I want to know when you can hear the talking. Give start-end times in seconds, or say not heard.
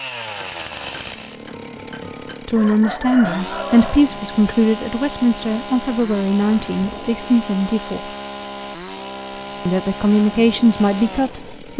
2.5-8.1, 9.7-11.7.